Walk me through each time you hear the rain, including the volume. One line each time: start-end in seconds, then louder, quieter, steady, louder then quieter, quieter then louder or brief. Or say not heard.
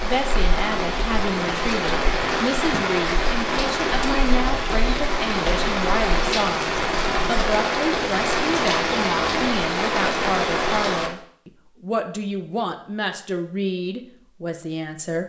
0.0-11.1 steady.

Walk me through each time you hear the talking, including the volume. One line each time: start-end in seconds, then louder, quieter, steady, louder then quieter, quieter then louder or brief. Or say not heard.
0.0-15.2 steady.